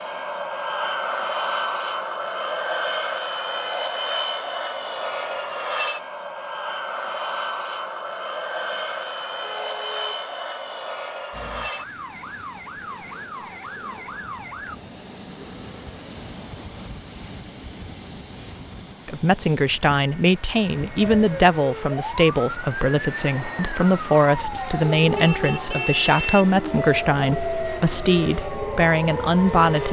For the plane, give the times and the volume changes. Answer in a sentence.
The plane can be heard from 0.0 to 29.8 s, getting quieter.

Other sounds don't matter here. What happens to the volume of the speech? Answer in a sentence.
The volume of the speech stays about the same.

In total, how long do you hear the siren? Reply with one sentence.
You can hear the siren for 12 seconds altogether.